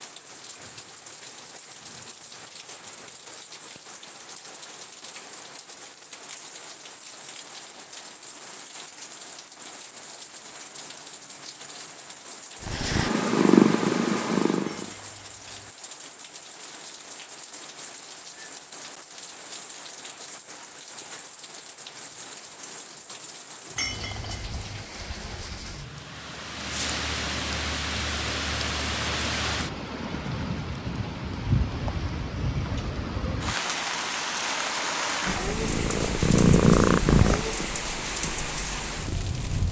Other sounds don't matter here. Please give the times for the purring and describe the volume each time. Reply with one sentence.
The purring can be heard briefly from 12.6 to 14.9 s; and from 35.2 to 39.6 s, getting louder then quieter.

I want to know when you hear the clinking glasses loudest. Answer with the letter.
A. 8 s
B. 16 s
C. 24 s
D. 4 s
C.